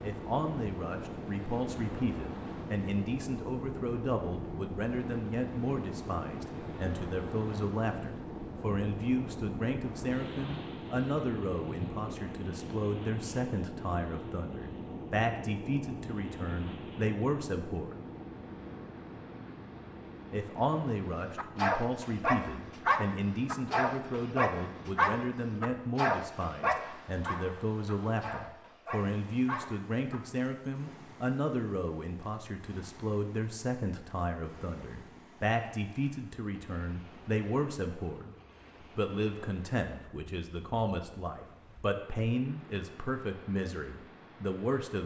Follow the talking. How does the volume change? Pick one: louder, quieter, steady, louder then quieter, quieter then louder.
steady.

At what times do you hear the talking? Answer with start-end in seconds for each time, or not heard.
0.0-18.1, 20.3-38.4, 39.0-45.0.